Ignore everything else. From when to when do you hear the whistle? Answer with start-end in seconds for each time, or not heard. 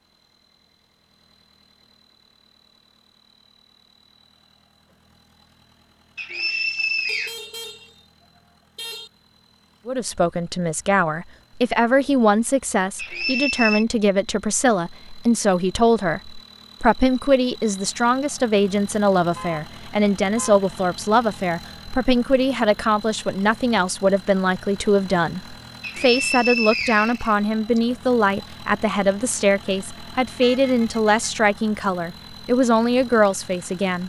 6.2-7.3, 12.9-13.8, 25.8-27.8.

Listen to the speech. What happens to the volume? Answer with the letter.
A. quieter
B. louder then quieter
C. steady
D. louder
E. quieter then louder
C.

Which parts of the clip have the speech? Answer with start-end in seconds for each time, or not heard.
9.8-34.0.